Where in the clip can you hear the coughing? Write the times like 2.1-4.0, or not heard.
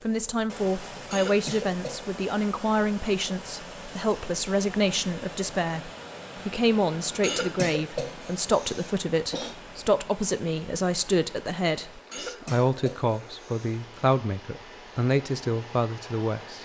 1.1-2.0, 7.2-9.6, 12.1-13.8.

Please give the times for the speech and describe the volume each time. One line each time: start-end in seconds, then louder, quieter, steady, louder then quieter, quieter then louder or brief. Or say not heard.
0.0-16.5 steady.